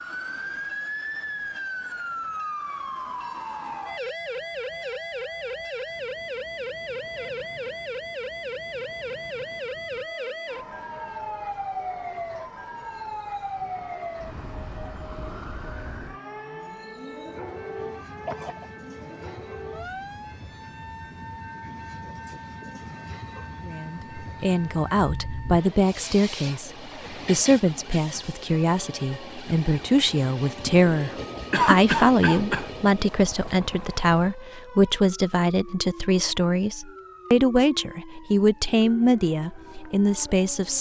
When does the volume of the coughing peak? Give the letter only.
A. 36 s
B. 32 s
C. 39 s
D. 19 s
B.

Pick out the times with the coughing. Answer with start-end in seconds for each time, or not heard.
18.2-18.7, 30.6-32.7.